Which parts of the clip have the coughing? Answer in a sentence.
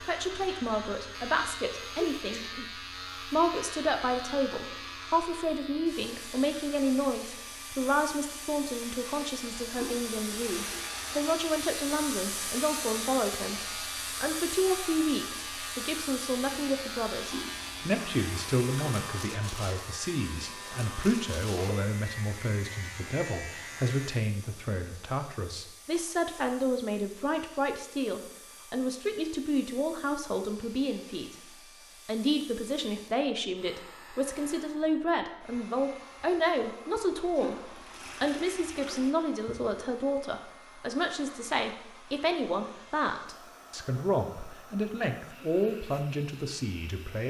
You can hear the coughing from 1.9 to 2.8 s.